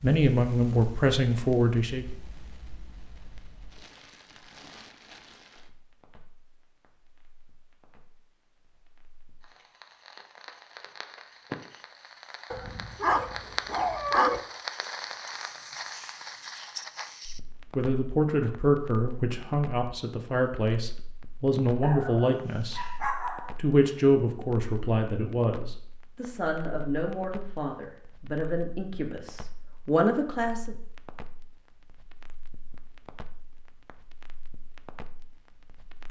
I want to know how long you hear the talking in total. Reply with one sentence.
The talking can be heard for 15 seconds in total.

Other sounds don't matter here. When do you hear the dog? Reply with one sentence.
You can hear the dog from 12.5 to 14.4 s and from 21.8 to 23.6 s.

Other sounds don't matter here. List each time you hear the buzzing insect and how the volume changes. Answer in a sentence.
The buzzing insect can't be heard in this clip.